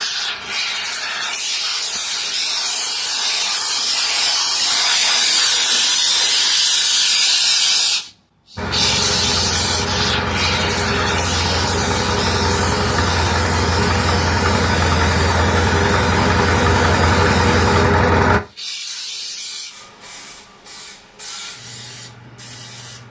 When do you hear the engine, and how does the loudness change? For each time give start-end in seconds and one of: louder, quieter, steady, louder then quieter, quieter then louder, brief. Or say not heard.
8.6-18.4 louder.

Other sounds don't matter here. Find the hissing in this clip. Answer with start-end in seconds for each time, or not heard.
0.0-23.0.